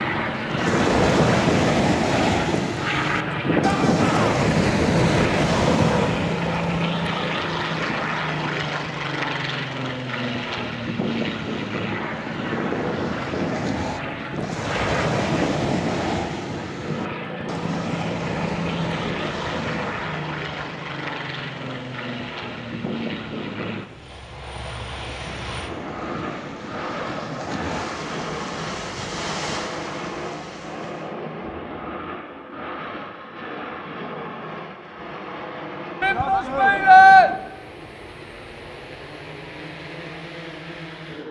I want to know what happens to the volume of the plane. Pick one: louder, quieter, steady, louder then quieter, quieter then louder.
quieter.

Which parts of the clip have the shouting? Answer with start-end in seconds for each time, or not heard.
3.6-4.4, 36.0-37.3.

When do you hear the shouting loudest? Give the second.
37 s.